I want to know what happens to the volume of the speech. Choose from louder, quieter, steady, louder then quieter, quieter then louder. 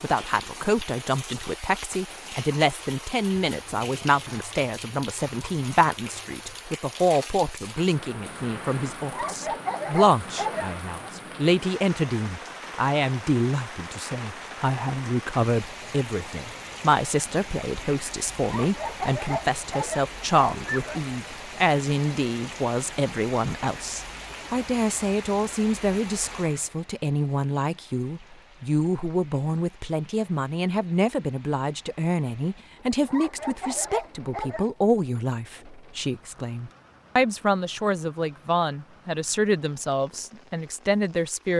steady.